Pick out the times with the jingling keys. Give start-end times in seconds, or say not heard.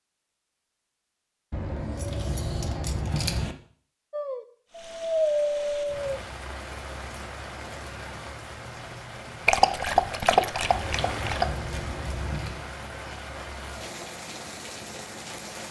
1.5-3.5, 10.7-12.6.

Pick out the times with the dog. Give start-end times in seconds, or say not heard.
4.1-6.2, 9.4-11.4.